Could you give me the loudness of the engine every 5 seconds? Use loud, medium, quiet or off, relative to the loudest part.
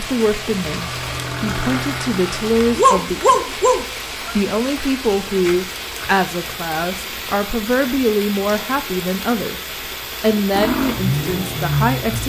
medium, off, loud.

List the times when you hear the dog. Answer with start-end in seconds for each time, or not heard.
2.8-4.3.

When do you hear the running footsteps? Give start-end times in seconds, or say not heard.
not heard.